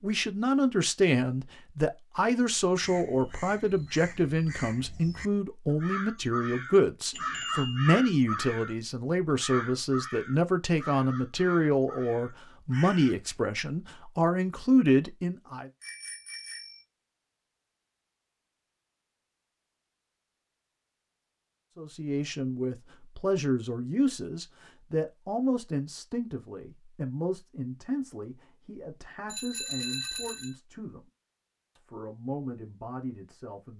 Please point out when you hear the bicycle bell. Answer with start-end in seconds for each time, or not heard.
7.1-8.0, 15.8-16.8, 29.2-30.6.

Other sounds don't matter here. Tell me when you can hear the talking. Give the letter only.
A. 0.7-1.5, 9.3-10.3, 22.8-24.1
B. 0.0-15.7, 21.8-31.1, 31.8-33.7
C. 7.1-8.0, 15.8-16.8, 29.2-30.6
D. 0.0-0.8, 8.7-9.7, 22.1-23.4
B.